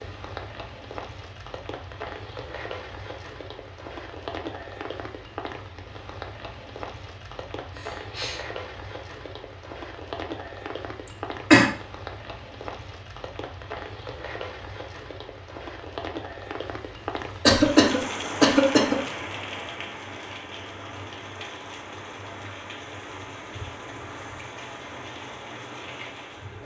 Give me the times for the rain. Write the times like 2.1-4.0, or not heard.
0.0-26.6.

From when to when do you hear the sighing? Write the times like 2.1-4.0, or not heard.
7.7-8.4.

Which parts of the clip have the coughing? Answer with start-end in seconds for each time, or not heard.
11.1-11.7, 17.4-19.0.